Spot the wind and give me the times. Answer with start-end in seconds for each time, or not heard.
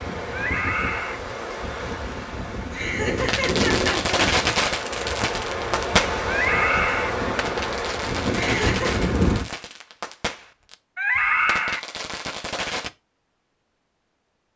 0.0-9.4.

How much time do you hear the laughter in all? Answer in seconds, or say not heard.
2 s.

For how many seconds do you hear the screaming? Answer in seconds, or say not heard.
3 s.